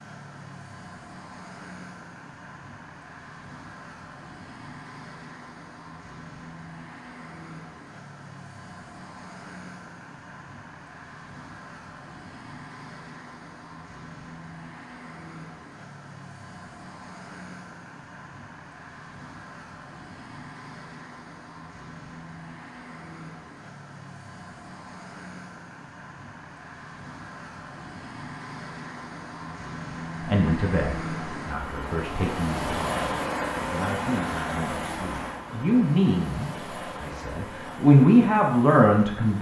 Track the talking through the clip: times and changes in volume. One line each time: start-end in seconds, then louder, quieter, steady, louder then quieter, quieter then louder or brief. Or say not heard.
30.2-33.1 brief
33.7-39.3 louder.